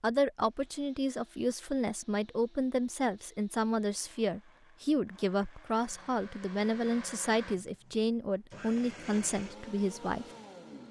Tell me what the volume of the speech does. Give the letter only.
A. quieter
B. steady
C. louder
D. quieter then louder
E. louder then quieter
B.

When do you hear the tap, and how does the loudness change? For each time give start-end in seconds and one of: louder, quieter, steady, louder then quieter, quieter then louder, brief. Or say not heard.
not heard.